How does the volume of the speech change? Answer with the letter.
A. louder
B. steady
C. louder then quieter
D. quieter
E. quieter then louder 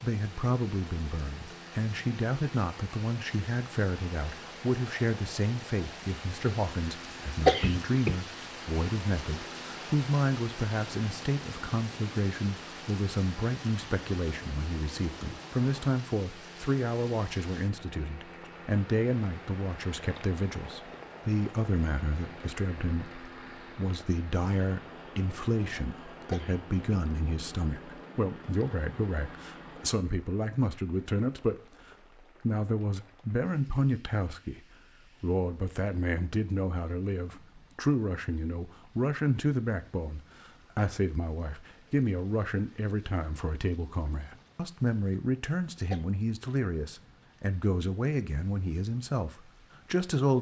B.